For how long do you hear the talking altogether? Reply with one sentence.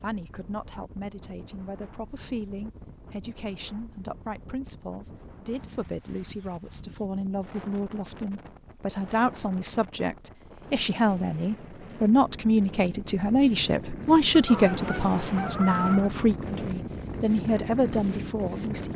The talking can be heard for 19 seconds in total.